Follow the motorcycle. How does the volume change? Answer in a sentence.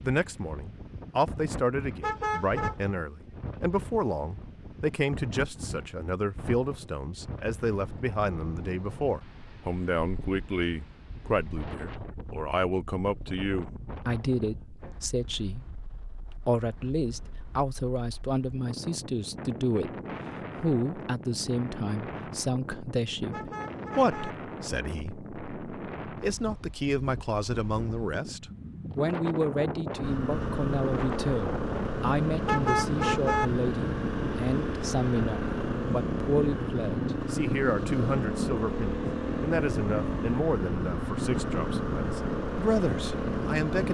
The loudness of the motorcycle stays about the same.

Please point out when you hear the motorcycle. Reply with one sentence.
You can hear the motorcycle from 30.0 to 43.8 s.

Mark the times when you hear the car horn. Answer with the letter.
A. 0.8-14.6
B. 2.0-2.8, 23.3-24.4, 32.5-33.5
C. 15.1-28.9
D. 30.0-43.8
B.